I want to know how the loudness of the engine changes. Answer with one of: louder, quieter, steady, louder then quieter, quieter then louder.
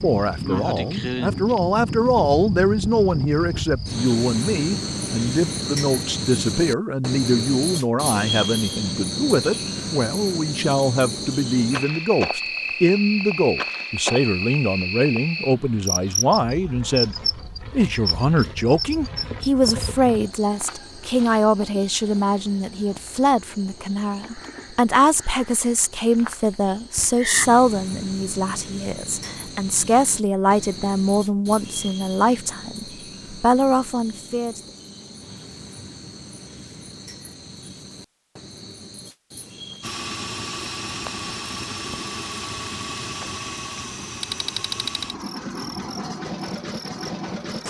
steady.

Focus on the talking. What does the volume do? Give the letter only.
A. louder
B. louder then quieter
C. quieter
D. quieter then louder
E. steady
E.